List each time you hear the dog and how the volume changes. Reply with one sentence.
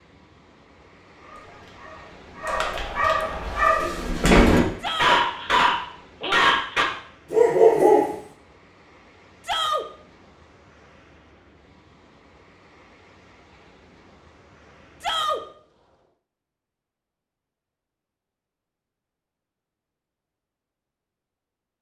The dog can be heard from 1.2 to 8.2 s, getting louder.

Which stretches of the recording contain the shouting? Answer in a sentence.
The shouting can be heard from 4.8 to 5.2 s, from 9.4 to 9.8 s and from 15.0 to 15.4 s.